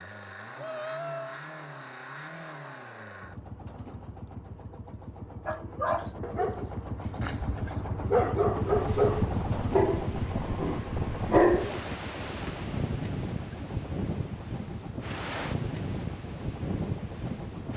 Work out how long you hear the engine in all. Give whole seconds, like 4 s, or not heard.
18 s.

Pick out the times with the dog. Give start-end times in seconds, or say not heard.
5.5-11.8.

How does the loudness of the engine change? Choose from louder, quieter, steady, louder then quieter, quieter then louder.
louder then quieter.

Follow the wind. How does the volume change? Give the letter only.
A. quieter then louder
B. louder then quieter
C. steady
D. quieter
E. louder
C.